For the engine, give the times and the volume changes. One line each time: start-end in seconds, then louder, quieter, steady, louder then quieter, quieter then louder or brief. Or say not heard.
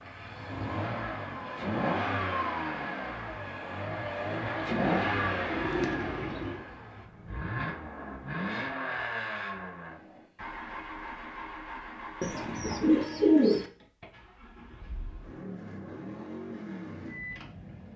0.0-17.9 quieter.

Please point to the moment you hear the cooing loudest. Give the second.
13 s.